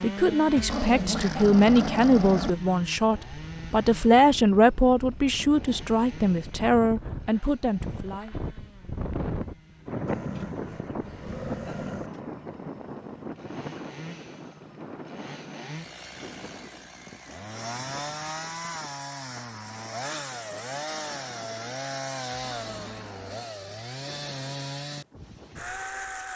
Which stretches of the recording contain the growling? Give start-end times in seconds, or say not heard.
0.6-2.5, 10.1-12.1, 22.6-23.4.